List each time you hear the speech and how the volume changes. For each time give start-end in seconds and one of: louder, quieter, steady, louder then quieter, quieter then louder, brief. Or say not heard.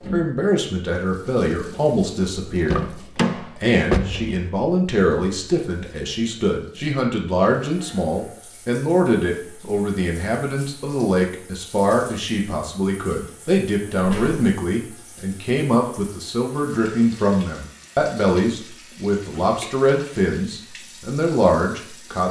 0.1-22.2 steady.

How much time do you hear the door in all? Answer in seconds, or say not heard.
3 s.